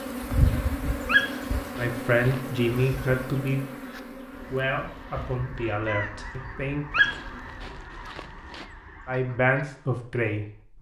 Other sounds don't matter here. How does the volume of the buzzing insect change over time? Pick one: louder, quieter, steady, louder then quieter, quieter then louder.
quieter.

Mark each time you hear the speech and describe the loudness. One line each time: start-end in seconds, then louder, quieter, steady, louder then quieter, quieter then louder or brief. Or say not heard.
1.8-6.8 quieter
9.1-10.7 brief.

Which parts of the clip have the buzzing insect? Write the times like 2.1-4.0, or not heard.
0.0-7.7.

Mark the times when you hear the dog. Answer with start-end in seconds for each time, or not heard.
1.1-2.5, 6.9-8.7.